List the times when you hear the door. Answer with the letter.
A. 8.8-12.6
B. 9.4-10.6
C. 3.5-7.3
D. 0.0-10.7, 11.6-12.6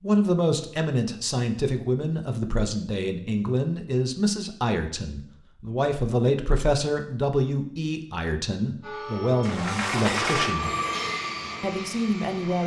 B.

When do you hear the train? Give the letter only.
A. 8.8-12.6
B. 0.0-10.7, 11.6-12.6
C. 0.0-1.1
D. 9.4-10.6
A.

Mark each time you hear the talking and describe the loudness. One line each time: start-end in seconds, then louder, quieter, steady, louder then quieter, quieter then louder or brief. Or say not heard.
0.0-10.7 steady
11.6-12.6 brief.